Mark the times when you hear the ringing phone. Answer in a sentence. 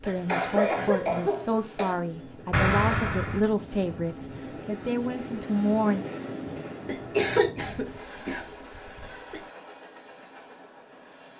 You can hear the ringing phone from 2.5 to 3.5 s.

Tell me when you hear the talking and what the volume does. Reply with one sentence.
The talking can be heard from 0.0 to 6.0 s, at a steady volume.